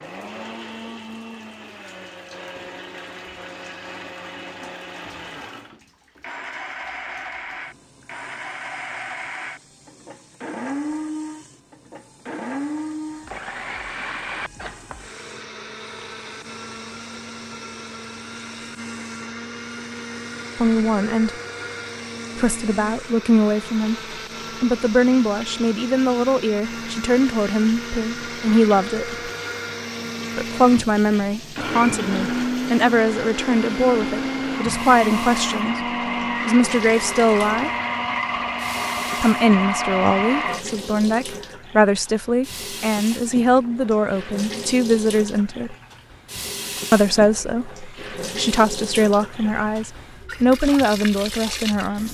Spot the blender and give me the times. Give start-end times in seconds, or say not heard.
0.0-40.6.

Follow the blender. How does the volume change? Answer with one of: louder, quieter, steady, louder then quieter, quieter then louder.
louder.